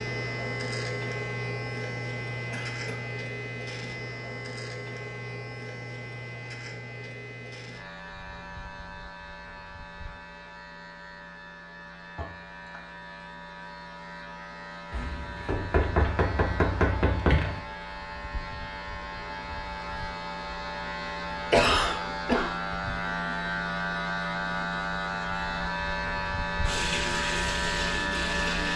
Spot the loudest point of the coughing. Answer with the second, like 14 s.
22 s.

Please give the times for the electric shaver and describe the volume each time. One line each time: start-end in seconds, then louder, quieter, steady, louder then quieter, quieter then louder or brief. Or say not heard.
0.0-28.7 quieter then louder.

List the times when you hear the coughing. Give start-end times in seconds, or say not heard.
2.5-3.1, 12.2-12.8, 21.5-22.5.